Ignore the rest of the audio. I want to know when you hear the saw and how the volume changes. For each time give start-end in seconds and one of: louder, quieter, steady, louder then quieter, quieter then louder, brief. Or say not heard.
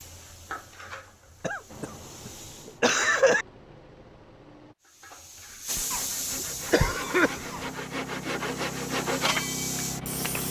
5.7-10.4 louder.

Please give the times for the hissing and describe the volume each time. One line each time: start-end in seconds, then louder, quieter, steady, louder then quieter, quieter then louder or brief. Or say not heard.
0.0-2.8 brief
4.9-10.4 quieter then louder.